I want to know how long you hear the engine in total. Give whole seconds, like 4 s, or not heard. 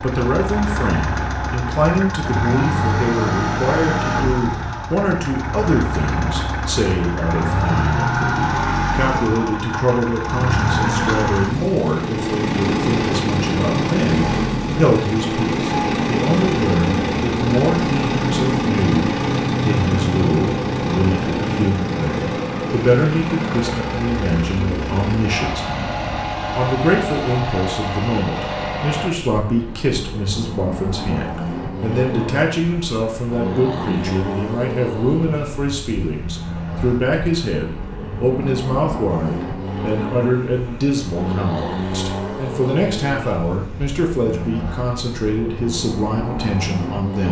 47 s.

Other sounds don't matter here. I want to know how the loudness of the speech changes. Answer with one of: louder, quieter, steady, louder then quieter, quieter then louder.
steady.